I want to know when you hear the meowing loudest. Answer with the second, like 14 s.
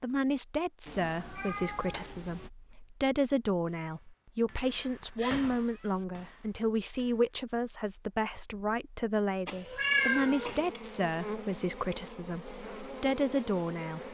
10 s.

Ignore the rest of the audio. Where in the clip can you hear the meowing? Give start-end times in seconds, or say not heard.
0.8-2.5, 5.2-6.0, 9.4-10.8.